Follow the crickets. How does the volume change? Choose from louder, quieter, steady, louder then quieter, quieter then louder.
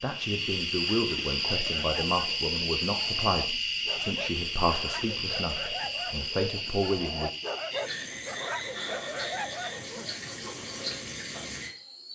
quieter.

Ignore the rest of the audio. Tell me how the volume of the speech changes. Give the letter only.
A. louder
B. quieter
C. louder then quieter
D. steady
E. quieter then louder
D.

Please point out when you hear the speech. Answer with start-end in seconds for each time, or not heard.
0.0-7.3.